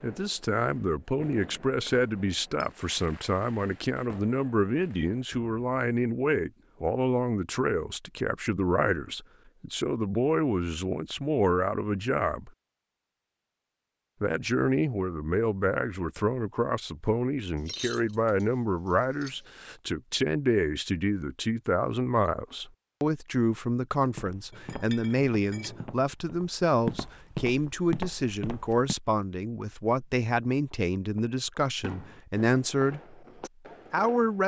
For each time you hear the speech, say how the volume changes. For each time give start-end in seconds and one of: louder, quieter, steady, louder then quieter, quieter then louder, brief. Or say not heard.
0.0-12.5 steady
14.2-33.2 steady
33.9-34.4 brief.